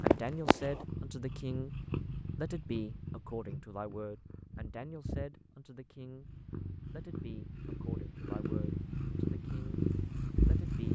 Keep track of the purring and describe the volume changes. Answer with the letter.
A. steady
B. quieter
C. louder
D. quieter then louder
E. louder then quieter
D.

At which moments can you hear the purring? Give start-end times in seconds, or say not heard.
0.0-10.9.